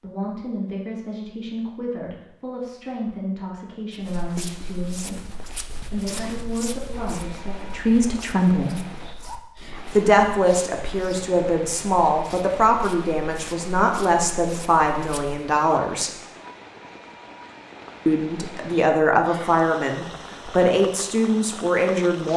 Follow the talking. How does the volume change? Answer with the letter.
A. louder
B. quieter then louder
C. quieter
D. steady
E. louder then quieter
A.